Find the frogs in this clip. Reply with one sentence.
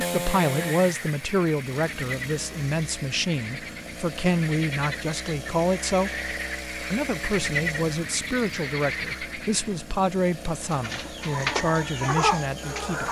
The frogs can be heard from 0.0 to 9.8 s.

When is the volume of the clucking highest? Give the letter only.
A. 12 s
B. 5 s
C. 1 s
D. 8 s
A.